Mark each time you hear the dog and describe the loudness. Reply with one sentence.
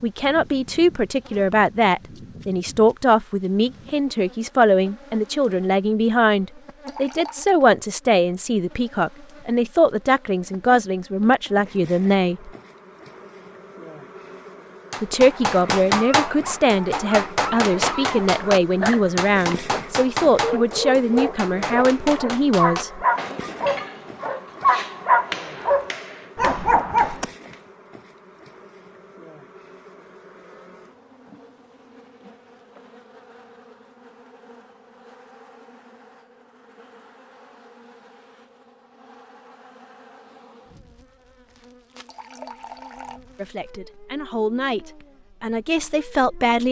You can hear the dog from 15.1 to 27.2 s, getting louder.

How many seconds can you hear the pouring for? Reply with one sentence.
You can hear the pouring for 2 seconds altogether.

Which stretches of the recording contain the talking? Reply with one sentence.
You can hear the talking from 0.0 to 12.5 s, from 15.0 to 23.1 s and from 43.4 to 46.6 s.